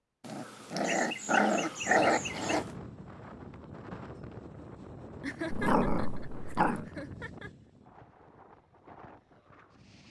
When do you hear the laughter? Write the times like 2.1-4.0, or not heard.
0.8-2.6, 5.2-7.5.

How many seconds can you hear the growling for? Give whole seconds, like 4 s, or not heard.
4 s.